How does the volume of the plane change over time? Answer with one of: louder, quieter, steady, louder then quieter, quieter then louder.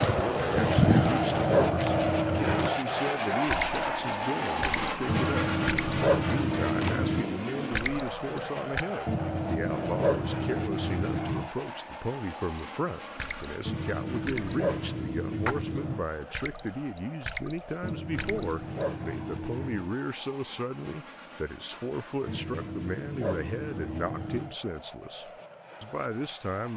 quieter.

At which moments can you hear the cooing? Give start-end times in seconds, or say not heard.
0.0-1.6.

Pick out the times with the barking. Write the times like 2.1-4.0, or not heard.
0.6-2.8, 5.0-7.3, 9.1-11.5, 13.7-16.1, 17.8-19.9, 22.2-24.6.